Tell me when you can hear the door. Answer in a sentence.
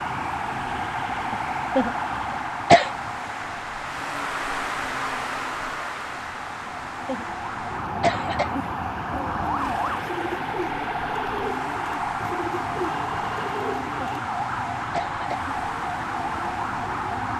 The door can't be heard in this clip.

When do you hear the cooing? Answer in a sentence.
The cooing can be heard from 9.1 to 14.2 s.